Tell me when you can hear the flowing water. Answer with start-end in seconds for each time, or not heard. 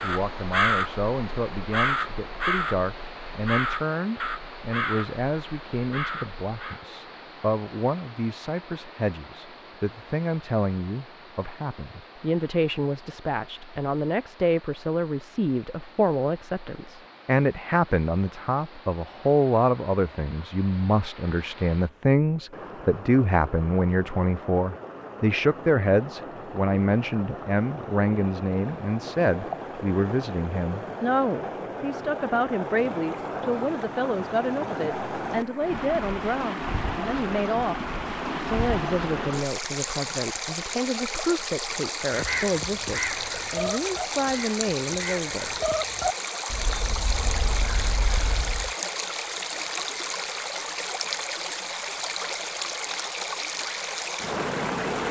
0.0-55.0.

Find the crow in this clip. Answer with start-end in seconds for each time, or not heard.
0.0-6.8, 42.1-48.7.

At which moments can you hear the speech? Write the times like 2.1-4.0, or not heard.
0.0-45.6.